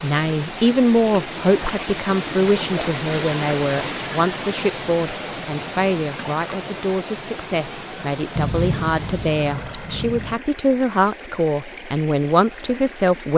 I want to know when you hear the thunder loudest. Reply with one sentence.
The loudest moment of the thunder is at 9 seconds.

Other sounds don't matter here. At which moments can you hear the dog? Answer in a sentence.
You can't hear the dog here.